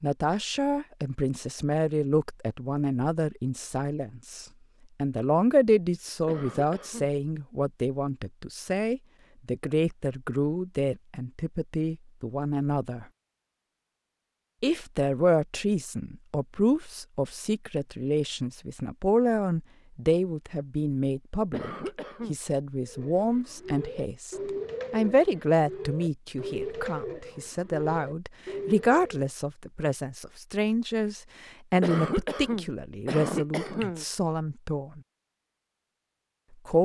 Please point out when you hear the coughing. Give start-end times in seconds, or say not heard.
6.2-7.1, 21.5-22.4, 31.8-34.0.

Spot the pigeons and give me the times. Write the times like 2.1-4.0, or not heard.
22.8-29.3.